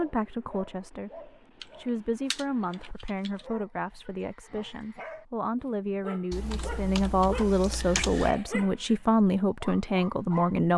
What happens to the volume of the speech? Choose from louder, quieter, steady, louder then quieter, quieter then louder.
louder.